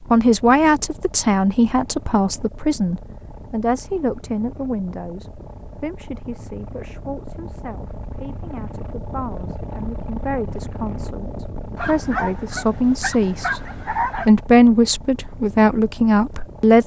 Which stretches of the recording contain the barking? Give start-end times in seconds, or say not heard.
11.8-14.3.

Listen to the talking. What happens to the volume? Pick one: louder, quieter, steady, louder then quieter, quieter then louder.
quieter then louder.